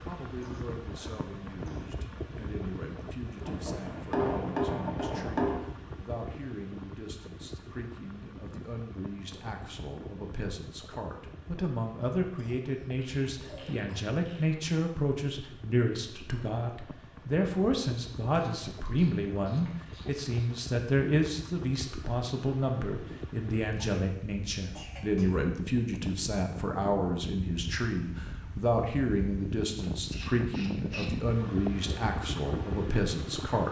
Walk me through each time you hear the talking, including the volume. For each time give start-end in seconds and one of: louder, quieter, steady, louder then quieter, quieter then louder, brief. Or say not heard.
0.0-33.6 louder.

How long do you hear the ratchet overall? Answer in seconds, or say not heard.
7 s.